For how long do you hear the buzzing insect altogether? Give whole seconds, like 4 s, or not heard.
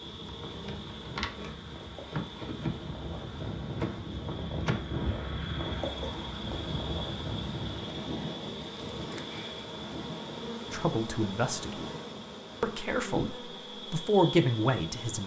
15 s.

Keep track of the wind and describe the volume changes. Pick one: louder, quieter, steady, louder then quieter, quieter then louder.
louder then quieter.